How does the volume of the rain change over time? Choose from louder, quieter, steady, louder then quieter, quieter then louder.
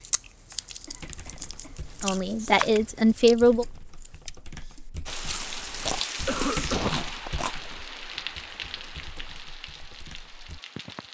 quieter.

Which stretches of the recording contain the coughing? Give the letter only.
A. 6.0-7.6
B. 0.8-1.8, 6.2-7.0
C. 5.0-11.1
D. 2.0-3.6
B.